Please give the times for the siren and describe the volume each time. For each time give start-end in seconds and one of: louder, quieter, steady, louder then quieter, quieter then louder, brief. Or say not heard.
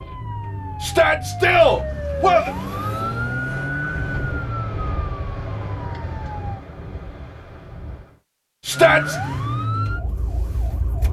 0.0-6.6 louder then quieter
8.7-11.0 brief.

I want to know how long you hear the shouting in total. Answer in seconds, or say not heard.
2 s.